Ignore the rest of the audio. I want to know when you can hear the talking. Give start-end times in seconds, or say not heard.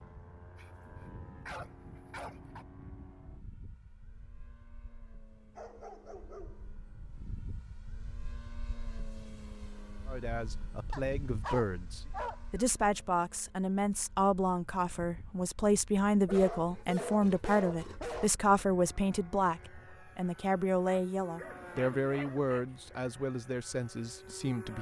10.1-24.7.